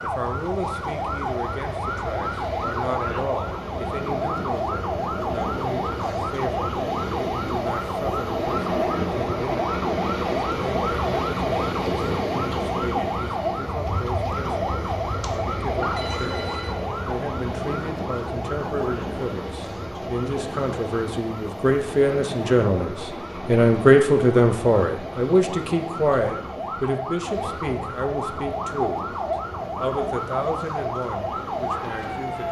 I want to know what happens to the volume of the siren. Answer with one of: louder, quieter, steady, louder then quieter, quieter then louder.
quieter then louder.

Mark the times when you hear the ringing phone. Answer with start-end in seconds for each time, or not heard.
15.2-16.8.